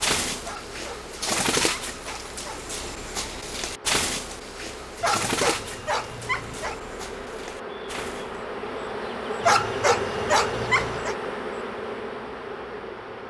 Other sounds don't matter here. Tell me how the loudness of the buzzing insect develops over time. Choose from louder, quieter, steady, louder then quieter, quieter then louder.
louder.